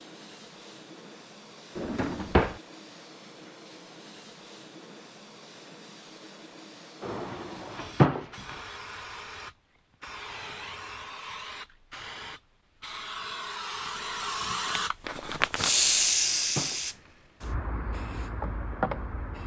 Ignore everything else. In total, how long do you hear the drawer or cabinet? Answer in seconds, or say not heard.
4 s.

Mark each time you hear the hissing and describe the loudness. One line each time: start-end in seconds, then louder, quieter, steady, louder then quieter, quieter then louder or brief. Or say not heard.
0.0-19.4 louder.